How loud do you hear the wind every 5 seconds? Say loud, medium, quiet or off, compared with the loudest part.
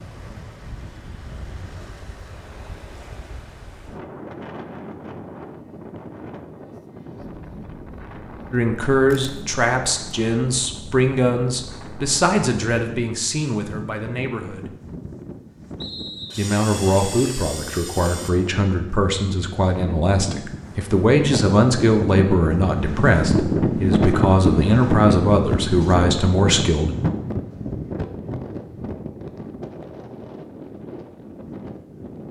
quiet, quiet, quiet, quiet, loud, loud, quiet.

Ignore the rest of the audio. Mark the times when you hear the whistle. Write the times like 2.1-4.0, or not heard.
15.8-16.5.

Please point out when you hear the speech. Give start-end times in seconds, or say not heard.
8.5-14.8, 16.4-26.9.